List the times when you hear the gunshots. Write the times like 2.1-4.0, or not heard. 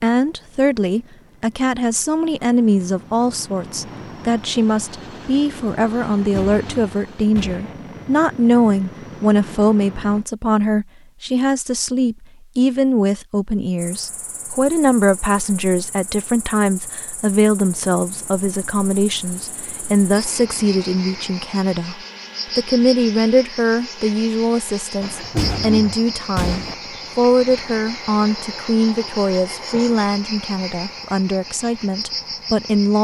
6.2-7.8, 25.0-26.8.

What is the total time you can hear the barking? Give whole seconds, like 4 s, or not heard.
not heard.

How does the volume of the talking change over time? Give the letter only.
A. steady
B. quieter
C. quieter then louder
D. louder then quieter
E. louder
A.